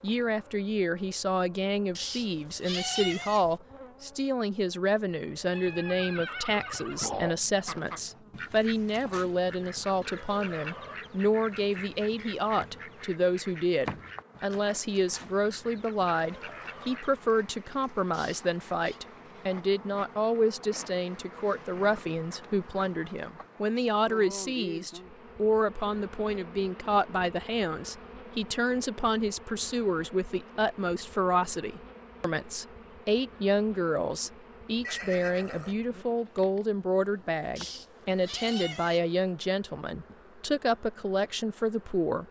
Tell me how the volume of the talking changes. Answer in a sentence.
The volume of the talking stays about the same.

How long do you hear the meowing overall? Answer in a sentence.
You can hear the meowing for 4 seconds altogether.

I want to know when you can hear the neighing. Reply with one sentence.
You can hear the neighing from 5.5 to 7.4 s and from 34.8 to 36.0 s.